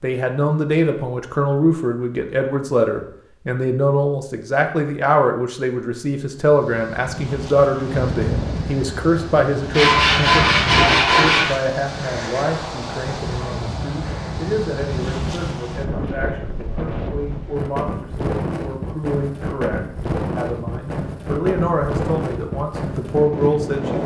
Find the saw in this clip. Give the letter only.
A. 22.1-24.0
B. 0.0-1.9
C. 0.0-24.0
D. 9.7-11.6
D.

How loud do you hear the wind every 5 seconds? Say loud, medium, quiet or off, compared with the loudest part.
off, loud, loud, loud, loud.